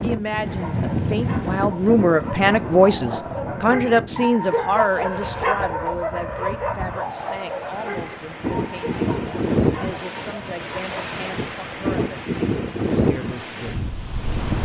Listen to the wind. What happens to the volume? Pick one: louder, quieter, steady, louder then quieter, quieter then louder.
quieter then louder.